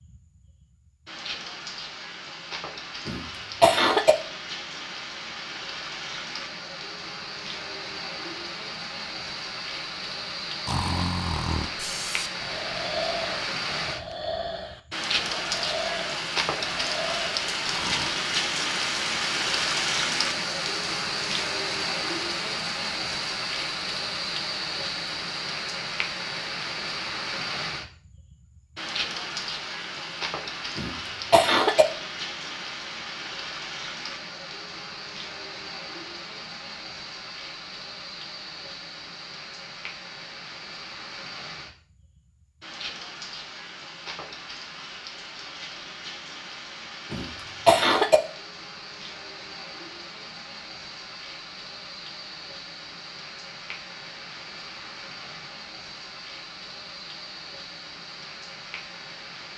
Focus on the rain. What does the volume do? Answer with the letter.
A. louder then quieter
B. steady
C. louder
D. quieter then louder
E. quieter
A.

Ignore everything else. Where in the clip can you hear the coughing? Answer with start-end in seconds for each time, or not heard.
3.0-4.2, 30.8-31.9, 47.1-48.2.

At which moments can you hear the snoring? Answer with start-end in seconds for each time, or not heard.
10.7-18.1.